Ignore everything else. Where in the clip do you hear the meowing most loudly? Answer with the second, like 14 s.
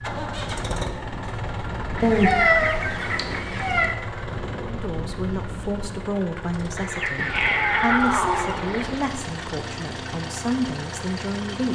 2 s.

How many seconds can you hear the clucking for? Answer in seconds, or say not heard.
4 s.